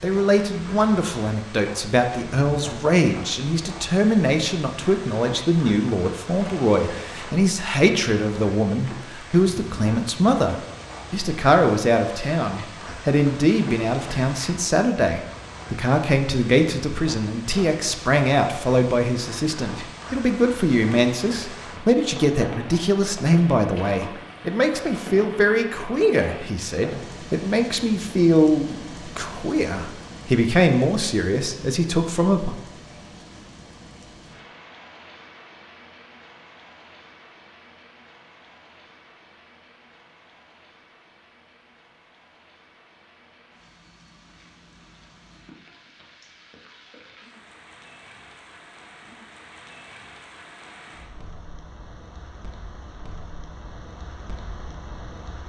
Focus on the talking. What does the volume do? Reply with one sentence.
The volume of the talking stays about the same.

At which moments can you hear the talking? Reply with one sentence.
The talking can be heard from 0.0 to 32.5 s.